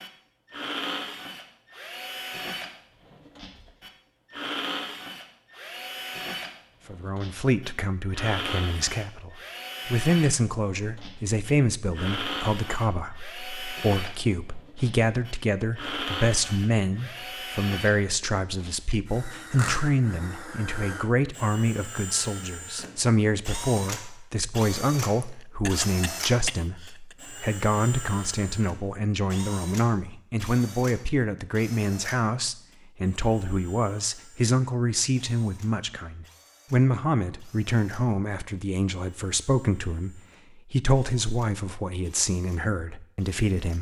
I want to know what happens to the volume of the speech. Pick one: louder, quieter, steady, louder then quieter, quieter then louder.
steady.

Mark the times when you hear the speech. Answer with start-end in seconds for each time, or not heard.
6.8-43.7.